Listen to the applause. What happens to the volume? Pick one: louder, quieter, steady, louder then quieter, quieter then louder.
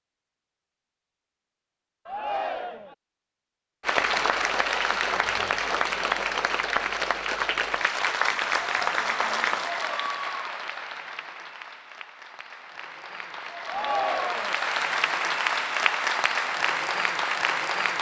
quieter then louder.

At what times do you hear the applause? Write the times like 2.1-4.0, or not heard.
3.8-17.9.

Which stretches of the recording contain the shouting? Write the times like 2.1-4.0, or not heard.
2.0-3.0, 13.7-14.6.